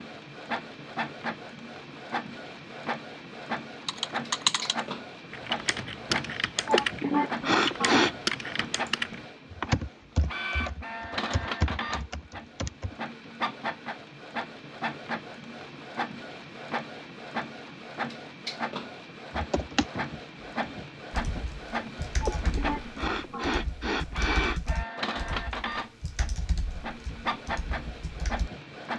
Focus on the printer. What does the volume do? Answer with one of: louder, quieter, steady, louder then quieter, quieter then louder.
steady.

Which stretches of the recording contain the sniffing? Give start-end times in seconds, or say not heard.
6.7-8.2, 22.2-24.8.